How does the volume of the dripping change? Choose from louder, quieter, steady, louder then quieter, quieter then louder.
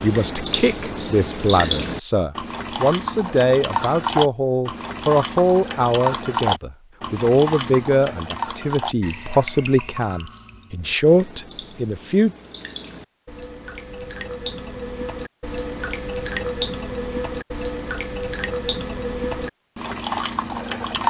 quieter then louder.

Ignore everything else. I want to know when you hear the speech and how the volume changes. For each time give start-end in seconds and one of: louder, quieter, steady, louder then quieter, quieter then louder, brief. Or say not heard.
0.0-12.3 steady.